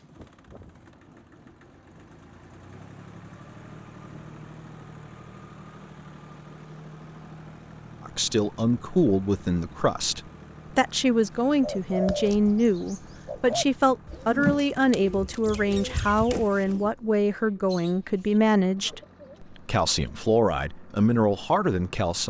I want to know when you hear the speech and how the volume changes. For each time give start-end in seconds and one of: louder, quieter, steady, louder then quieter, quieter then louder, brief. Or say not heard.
8.0-22.2 steady.